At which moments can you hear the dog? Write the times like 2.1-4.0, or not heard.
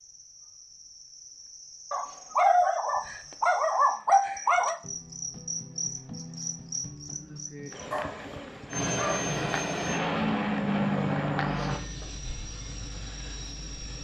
1.9-4.8, 7.9-9.3.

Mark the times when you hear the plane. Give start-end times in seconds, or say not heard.
8.7-13.9.